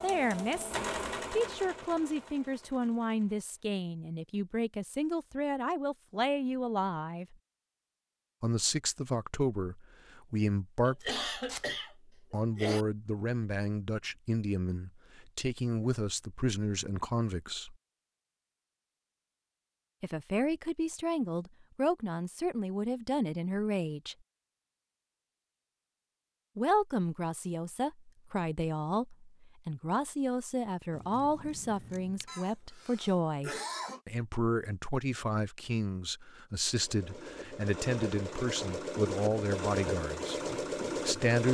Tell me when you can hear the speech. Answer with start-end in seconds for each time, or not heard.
0.0-7.3, 8.4-11.2, 12.3-17.8, 20.0-24.1, 26.6-41.4.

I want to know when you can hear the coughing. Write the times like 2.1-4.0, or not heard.
10.8-12.8, 32.2-34.0.